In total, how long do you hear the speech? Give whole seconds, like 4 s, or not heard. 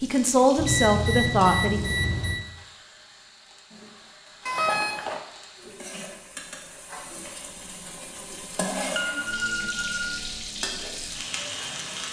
2 s.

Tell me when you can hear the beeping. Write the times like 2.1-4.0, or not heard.
0.6-2.4, 4.5-5.2, 8.9-10.1.